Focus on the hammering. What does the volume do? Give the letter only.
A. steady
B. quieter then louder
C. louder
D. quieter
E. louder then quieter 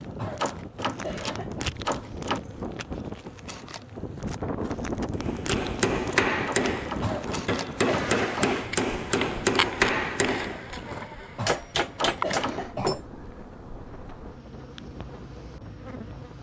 A.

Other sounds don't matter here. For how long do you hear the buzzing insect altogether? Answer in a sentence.
You can hear the buzzing insect for 16 seconds altogether.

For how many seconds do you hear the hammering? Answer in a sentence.
The hammering can be heard for 8 seconds in total.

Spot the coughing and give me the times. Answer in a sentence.
You can hear the coughing from 0.1 to 1.6 s, from 7.0 to 8.6 s and from 11.3 to 12.9 s.